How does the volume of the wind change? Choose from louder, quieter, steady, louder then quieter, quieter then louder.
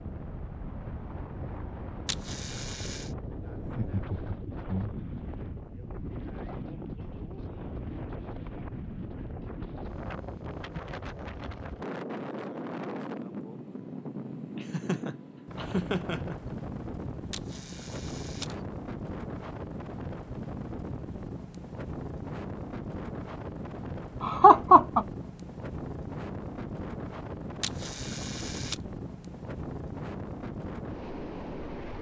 steady.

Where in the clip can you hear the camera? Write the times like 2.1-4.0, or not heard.
2.0-3.1, 17.3-18.6, 27.6-28.8.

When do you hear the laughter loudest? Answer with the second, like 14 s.
25 s.